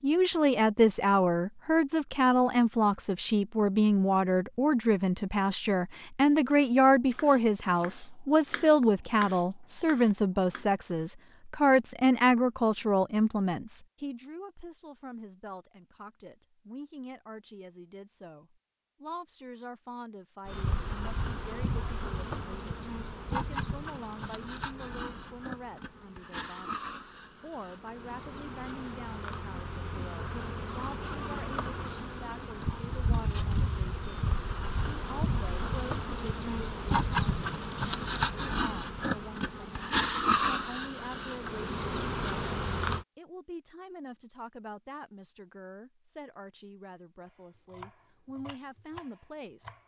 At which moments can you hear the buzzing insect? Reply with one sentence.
You can hear the buzzing insect from 20.4 to 43.0 s.